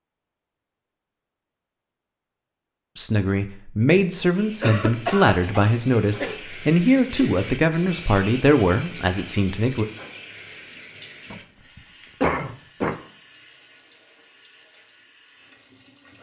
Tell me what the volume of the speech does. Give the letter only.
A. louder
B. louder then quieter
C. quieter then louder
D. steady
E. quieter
D.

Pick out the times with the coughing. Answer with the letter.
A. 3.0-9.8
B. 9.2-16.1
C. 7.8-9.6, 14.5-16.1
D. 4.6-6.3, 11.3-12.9
D.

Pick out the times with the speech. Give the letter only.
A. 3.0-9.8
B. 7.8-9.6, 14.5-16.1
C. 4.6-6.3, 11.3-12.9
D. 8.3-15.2
A.